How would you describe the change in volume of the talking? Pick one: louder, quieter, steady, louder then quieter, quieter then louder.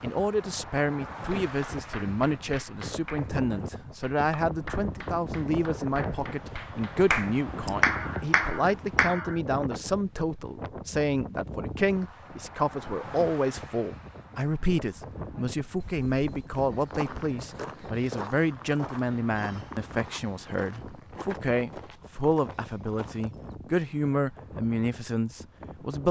steady.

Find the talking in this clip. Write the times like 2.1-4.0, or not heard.
0.0-26.0.